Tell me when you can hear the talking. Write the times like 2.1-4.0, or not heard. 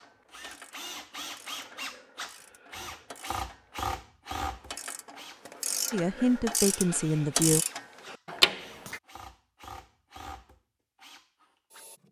5.9-7.7.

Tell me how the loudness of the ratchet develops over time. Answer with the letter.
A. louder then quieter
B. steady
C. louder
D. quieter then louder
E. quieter
C.